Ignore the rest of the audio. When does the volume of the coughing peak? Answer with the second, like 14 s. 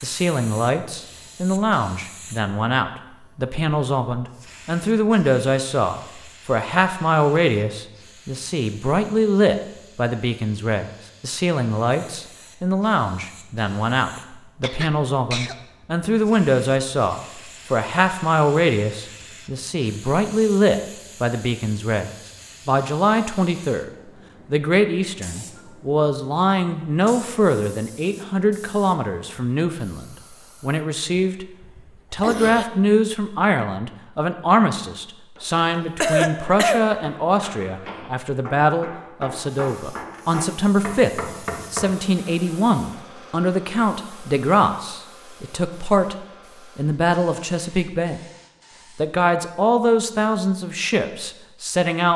36 s.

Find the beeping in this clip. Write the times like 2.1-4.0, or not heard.
not heard.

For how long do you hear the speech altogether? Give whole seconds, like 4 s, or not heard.
50 s.